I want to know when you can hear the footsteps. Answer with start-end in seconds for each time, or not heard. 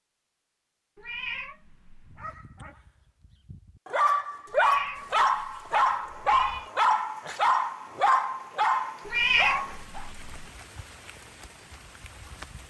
not heard.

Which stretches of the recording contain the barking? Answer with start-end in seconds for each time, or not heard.
2.0-10.1.